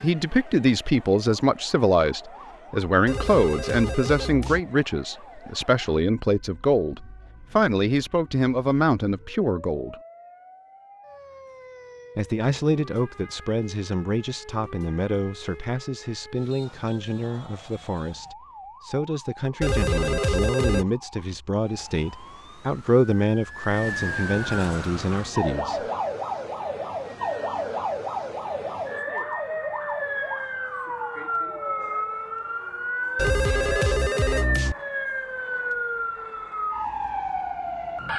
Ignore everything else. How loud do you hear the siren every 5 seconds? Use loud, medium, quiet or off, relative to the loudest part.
quiet, quiet, quiet, quiet, medium, loud, loud, loud.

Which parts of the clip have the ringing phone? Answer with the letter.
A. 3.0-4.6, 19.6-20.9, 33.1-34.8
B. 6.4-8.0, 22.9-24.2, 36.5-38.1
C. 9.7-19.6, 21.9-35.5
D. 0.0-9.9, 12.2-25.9
A.